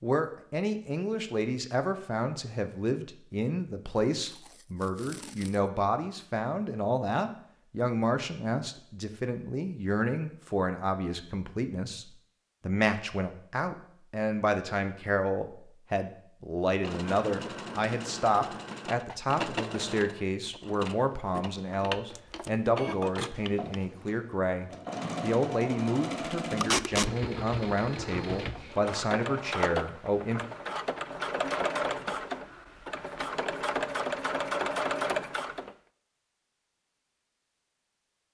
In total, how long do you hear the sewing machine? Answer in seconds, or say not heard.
19 s.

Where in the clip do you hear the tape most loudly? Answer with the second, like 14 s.
27 s.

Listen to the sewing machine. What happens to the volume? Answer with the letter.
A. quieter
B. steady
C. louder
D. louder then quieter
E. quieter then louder
C.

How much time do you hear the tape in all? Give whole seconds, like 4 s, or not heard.
2 s.